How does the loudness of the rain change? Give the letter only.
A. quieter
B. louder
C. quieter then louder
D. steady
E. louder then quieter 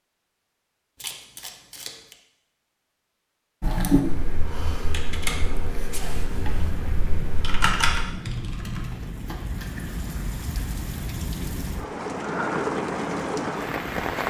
B.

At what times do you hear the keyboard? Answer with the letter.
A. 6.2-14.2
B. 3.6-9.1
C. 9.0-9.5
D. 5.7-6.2
B.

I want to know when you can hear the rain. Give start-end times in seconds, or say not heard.
6.2-14.2.